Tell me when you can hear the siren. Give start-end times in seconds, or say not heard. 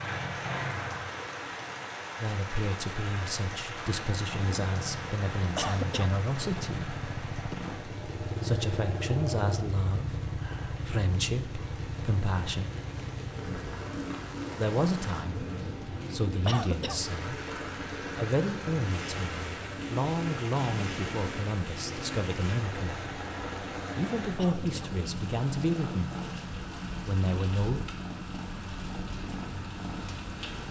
not heard.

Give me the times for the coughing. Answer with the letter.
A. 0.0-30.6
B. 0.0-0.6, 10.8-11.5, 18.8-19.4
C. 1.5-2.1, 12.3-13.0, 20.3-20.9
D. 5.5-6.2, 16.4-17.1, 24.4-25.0
D.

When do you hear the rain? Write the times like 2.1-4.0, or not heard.
0.0-30.6.